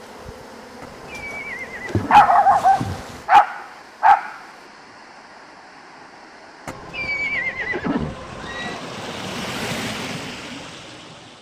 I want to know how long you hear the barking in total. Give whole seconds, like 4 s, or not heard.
2 s.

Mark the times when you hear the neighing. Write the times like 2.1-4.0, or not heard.
0.8-2.5, 6.7-8.8.